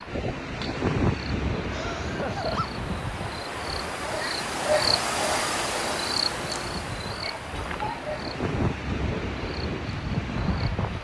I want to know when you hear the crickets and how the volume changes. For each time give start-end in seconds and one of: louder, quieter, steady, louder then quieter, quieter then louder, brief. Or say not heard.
0.0-10.9 louder then quieter.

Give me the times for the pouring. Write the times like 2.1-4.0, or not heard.
not heard.